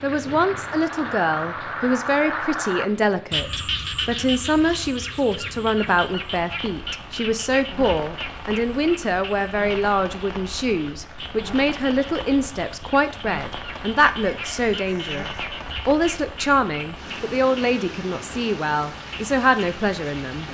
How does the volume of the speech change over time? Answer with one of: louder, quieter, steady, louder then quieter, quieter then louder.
steady.